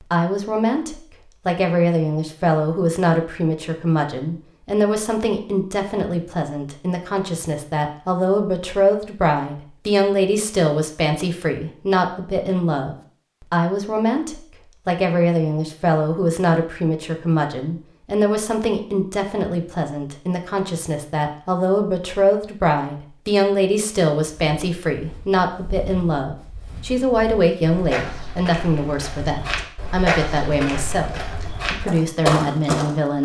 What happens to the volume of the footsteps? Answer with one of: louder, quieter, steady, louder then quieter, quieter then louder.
louder.